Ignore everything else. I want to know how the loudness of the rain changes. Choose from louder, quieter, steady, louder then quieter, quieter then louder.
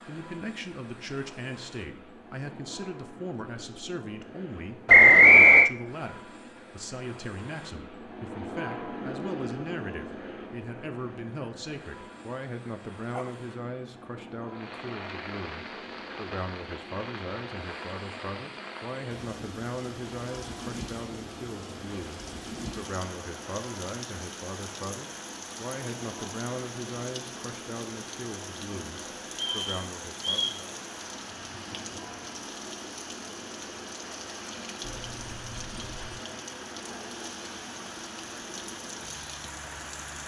steady.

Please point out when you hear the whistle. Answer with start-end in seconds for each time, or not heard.
4.8-5.7, 29.4-30.6.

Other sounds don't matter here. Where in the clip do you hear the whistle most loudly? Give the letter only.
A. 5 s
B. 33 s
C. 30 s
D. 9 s
A.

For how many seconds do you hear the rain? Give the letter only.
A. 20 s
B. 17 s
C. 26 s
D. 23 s
C.